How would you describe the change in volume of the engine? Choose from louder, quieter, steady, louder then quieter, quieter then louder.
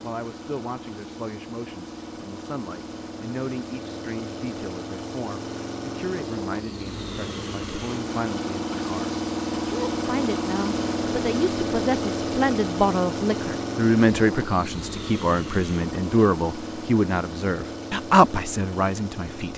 louder then quieter.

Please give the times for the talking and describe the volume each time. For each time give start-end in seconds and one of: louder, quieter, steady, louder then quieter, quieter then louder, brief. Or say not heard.
0.0-19.5 louder.